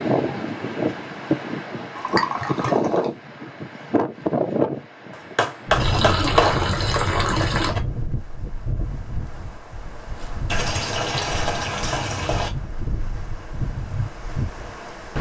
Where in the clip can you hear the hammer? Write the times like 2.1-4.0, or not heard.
5.1-7.8.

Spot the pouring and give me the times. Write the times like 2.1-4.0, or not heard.
1.9-3.1, 5.8-7.8, 10.4-12.5.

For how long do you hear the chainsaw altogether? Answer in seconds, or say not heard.
not heard.